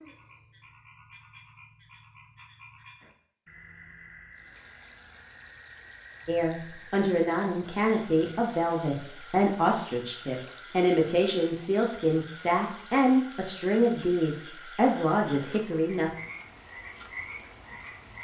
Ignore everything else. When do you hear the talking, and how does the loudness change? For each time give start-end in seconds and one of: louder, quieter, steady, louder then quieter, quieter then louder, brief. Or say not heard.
6.2-16.1 steady.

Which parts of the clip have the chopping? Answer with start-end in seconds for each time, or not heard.
not heard.